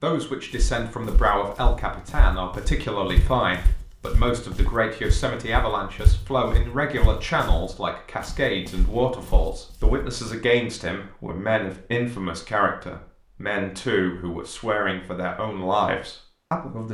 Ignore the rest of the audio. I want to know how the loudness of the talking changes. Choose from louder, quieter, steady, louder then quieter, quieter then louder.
steady.